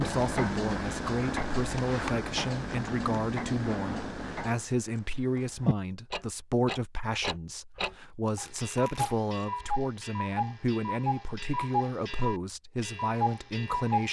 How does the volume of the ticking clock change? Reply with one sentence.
The loudness of the ticking clock stays about the same.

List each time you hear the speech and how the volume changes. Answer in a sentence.
The speech can be heard from 0.0 to 14.0 s, at a steady volume.